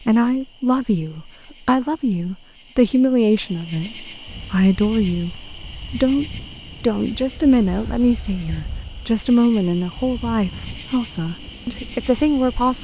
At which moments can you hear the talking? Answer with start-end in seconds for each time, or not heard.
0.1-12.7.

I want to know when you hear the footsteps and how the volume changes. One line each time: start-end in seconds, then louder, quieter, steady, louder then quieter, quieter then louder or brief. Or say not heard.
not heard.